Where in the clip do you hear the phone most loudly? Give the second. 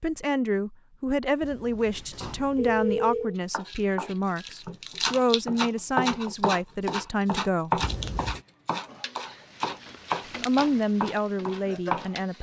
3 s.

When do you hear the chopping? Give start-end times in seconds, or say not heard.
3.5-12.1.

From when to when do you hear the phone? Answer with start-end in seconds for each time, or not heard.
1.4-3.4, 7.8-8.4.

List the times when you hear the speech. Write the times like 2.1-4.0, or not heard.
0.0-7.8, 10.4-12.3.